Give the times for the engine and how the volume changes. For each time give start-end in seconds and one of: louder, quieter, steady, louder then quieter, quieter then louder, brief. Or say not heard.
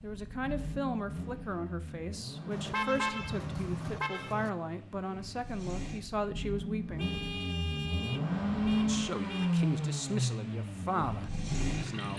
0.0-12.1 louder.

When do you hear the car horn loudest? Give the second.
3 s.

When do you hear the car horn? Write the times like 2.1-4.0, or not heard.
2.5-4.5, 7.0-9.6.